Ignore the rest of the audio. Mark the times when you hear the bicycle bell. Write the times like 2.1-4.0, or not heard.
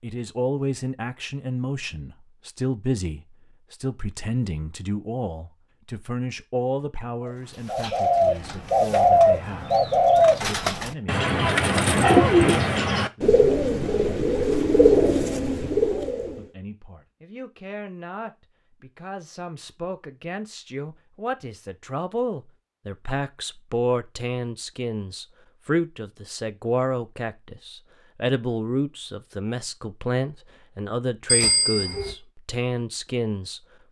31.2-32.1.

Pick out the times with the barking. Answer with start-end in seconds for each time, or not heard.
not heard.